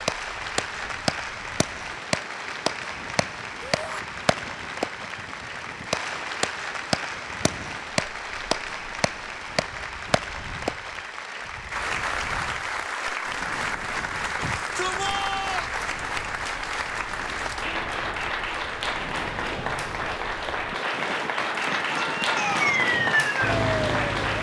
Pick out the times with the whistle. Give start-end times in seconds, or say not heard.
not heard.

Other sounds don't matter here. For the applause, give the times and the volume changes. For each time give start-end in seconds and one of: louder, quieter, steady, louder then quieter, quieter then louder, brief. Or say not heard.
0.0-24.3 steady.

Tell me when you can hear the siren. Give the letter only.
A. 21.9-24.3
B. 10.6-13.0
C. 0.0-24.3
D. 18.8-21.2
A.